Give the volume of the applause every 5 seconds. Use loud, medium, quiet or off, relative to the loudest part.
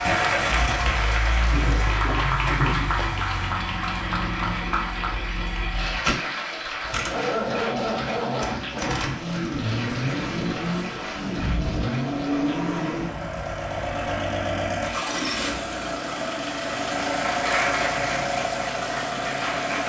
loud, medium, medium, loud.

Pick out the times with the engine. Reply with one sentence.
The engine can be heard from 0.0 to 19.8 s.